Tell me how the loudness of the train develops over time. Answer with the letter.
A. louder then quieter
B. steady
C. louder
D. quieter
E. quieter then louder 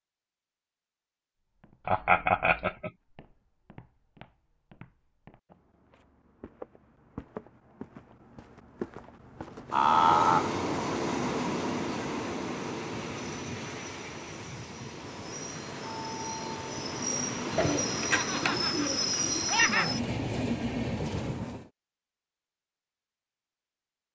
E.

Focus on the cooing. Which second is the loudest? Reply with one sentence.
The loudest moment of the cooing is at 18 seconds.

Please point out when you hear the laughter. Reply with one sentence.
You can hear the laughter from 1.9 to 2.9 s, from 9.7 to 10.6 s and from 18.1 to 19.9 s.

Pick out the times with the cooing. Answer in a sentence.
You can hear the cooing from 17.6 to 19.7 s.